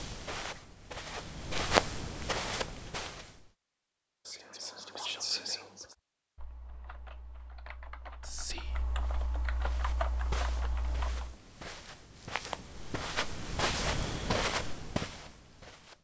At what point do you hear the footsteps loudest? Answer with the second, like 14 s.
2 s.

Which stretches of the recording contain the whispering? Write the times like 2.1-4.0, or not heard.
4.2-6.0, 8.2-8.8.